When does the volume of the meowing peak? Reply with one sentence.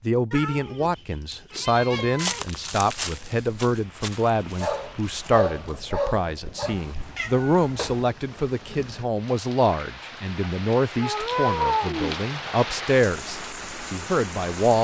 The volume of the meowing peaks at 12 seconds.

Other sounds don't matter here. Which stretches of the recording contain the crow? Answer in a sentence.
The crow can't be heard in this clip.